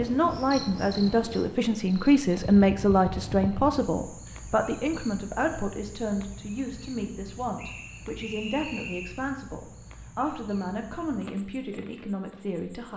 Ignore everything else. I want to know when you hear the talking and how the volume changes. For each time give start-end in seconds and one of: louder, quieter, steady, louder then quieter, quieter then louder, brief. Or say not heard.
0.0-12.9 quieter.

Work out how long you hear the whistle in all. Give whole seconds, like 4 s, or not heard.
2 s.